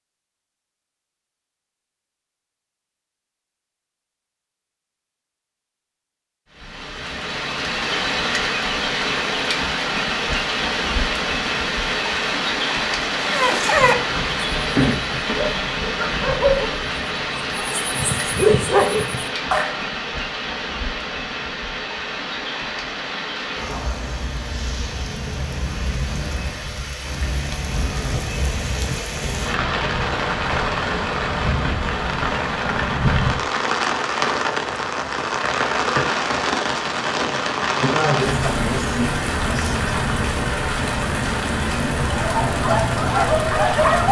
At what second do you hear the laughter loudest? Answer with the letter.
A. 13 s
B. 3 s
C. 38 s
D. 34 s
C.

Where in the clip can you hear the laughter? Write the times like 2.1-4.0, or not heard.
37.8-39.9.